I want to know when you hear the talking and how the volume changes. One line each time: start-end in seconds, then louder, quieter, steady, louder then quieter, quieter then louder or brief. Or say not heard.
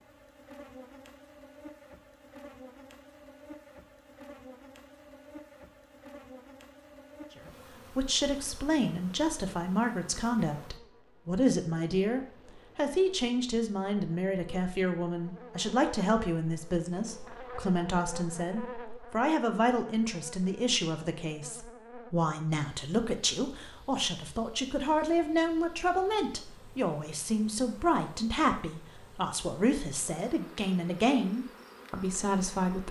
7.9-32.8 steady.